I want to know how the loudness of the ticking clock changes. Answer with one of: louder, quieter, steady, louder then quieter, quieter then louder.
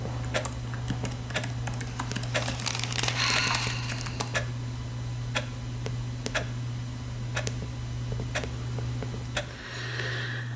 steady.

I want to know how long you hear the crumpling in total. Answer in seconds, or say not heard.
2 s.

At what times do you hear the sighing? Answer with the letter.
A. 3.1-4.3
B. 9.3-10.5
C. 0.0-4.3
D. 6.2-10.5
A.